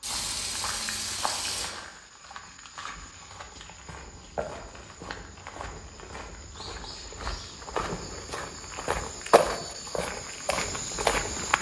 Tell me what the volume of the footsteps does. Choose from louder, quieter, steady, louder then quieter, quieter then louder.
louder.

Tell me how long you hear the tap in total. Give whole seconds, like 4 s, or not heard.
2 s.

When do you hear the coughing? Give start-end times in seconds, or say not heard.
not heard.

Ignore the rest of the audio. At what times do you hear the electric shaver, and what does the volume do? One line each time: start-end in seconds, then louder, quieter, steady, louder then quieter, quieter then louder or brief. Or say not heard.
not heard.